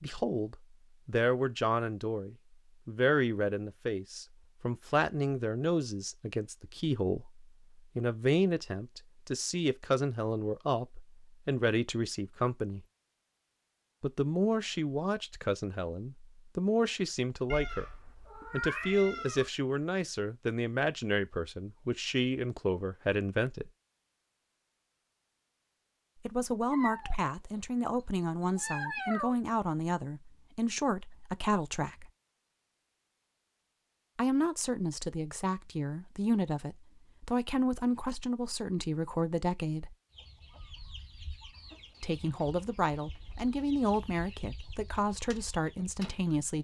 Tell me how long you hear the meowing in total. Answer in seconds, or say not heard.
5 s.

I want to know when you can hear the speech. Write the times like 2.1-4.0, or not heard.
0.0-12.8, 14.0-23.7, 26.2-32.1, 34.1-40.0, 42.0-46.5.